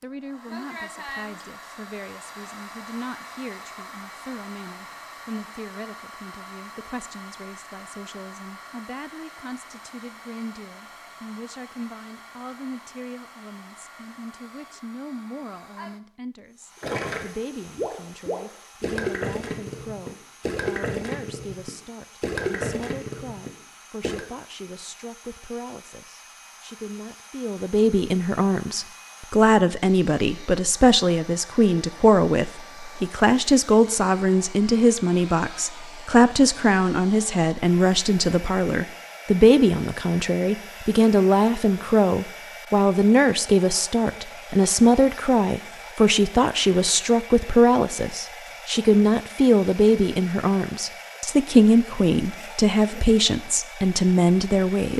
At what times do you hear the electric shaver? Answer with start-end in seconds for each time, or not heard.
not heard.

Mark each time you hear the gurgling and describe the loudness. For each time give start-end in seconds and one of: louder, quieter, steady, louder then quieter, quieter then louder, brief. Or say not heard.
16.8-24.2 steady.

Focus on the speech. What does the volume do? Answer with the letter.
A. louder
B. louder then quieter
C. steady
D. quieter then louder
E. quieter
A.